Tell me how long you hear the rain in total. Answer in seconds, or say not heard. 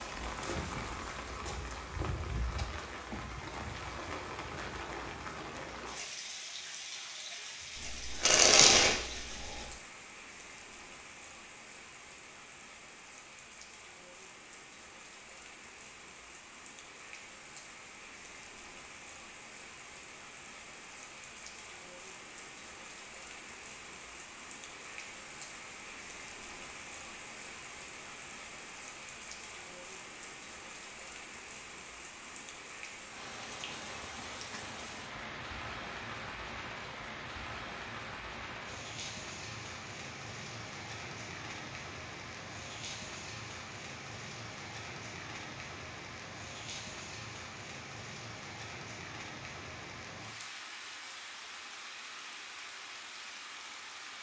54 s.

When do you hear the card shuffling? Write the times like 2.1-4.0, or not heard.
7.8-9.5.